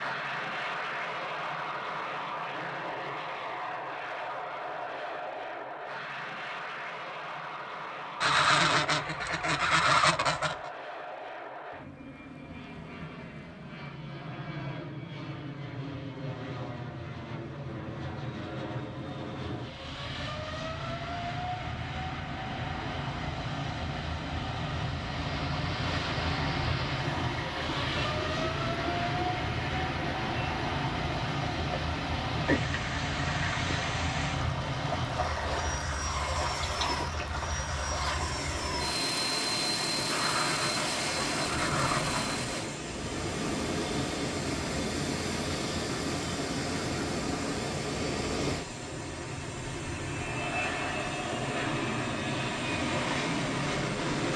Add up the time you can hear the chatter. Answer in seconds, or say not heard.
not heard.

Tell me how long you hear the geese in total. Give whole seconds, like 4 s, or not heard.
5 s.